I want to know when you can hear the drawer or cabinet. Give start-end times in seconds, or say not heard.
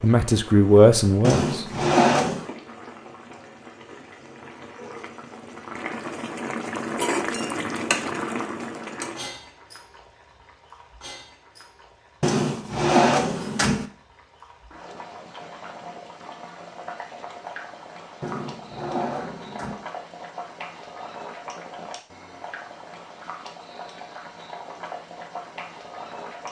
1.2-2.5, 12.2-13.8, 18.2-19.8.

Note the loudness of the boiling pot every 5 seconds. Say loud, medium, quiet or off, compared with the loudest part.
quiet, loud, quiet, medium, medium, medium.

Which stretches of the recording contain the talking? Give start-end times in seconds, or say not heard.
0.0-1.6.